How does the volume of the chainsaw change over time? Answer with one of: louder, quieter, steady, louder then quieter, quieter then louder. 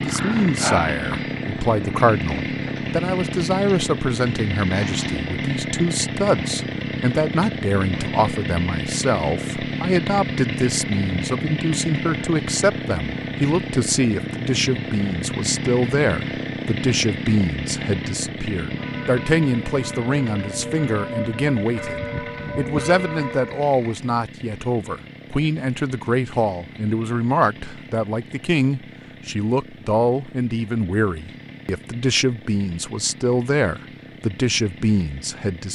quieter.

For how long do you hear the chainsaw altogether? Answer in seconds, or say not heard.
36 s.